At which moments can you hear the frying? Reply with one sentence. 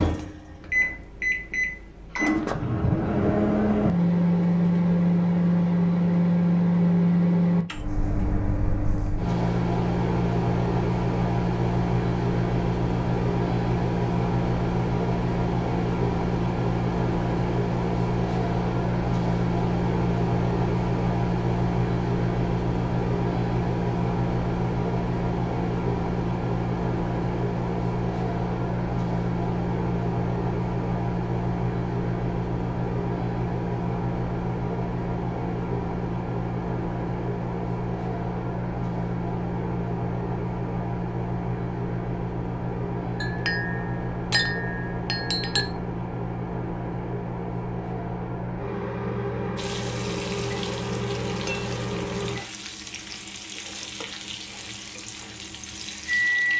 You can hear the frying from 49.5 to 56.5 s.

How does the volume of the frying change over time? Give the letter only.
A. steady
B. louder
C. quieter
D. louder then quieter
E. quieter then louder
A.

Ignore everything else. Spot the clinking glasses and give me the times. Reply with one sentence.
The clinking glasses can be heard from 43.2 to 45.7 s.